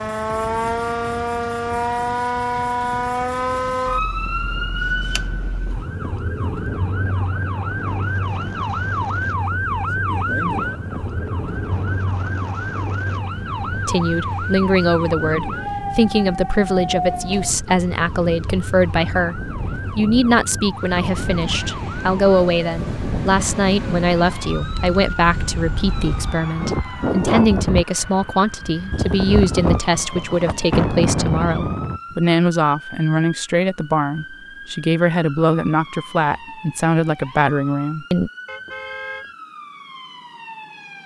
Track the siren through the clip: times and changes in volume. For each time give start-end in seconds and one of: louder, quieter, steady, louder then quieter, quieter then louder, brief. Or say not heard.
0.0-41.0 quieter.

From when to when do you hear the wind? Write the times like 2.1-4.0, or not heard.
0.0-32.1.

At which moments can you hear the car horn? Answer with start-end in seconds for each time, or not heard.
38.5-39.3.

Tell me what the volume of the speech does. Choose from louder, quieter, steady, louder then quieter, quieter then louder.
steady.